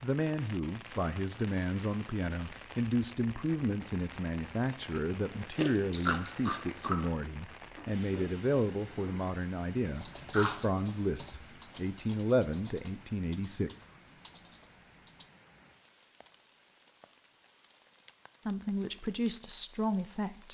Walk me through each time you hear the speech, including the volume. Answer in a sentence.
You can hear the speech from 0.0 to 13.7 s, at a steady volume; and briefly from 18.4 to 20.5 s.